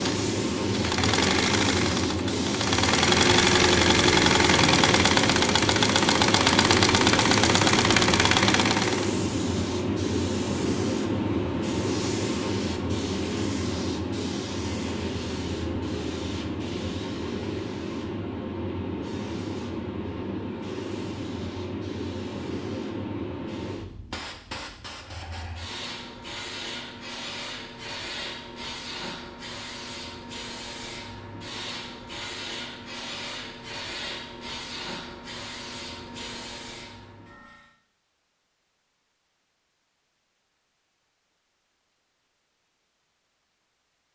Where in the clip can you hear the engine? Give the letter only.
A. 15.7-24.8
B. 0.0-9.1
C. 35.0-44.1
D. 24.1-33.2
B.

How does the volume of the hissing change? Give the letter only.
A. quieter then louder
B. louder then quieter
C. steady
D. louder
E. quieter
E.